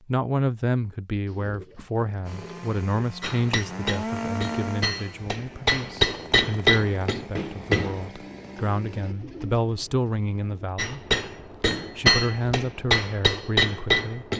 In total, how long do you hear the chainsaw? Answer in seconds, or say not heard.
7 s.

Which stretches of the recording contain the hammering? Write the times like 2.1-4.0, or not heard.
3.2-8.1, 10.8-14.3.